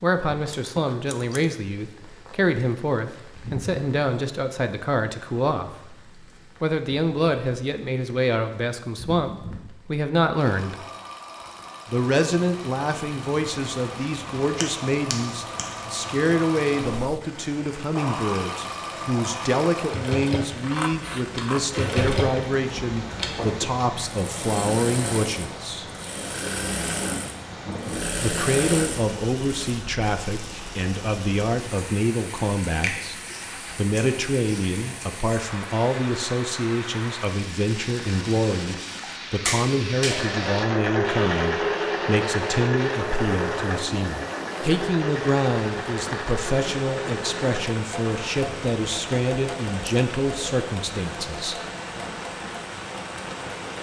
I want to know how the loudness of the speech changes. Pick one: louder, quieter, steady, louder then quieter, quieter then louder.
steady.